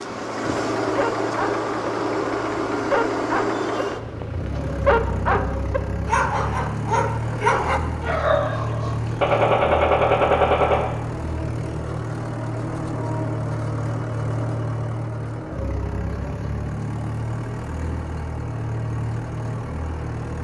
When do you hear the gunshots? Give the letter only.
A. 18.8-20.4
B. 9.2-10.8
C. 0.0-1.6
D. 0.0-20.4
B.